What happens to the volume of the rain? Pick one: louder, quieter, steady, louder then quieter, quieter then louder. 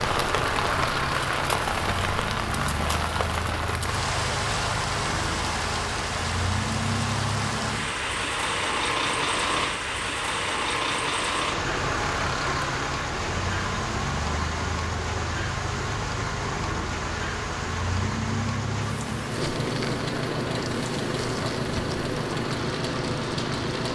quieter.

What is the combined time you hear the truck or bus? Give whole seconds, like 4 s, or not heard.
24 s.